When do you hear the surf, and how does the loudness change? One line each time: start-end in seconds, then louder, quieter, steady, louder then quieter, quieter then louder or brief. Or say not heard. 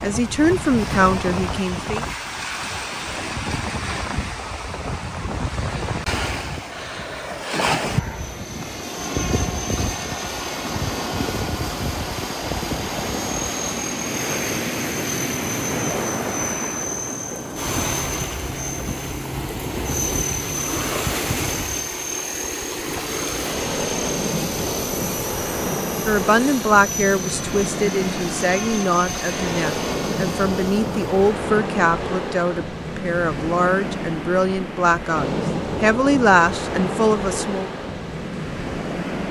0.0-39.2 steady.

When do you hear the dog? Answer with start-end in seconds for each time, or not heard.
not heard.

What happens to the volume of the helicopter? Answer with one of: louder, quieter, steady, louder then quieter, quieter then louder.
steady.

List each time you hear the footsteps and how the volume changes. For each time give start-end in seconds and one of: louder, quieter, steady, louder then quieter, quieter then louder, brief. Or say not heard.
not heard.